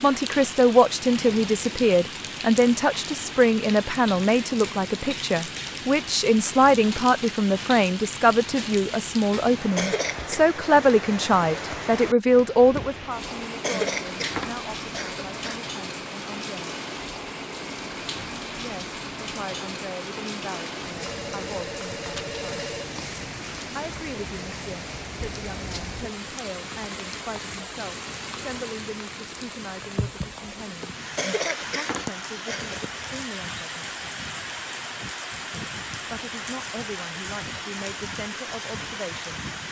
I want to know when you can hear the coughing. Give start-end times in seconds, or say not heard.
9.8-10.4, 13.6-15.6, 31.1-32.8.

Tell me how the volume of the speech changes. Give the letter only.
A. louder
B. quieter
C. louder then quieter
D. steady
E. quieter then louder
B.